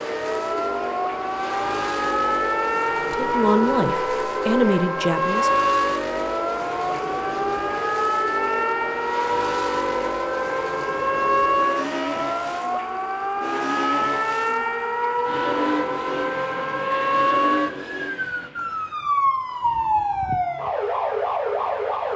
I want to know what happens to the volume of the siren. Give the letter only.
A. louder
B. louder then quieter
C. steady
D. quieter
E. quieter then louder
C.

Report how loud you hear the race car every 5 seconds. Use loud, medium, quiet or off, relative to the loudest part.
loud, loud, loud, loud, off.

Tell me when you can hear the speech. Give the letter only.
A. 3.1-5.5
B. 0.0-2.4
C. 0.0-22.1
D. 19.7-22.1
A.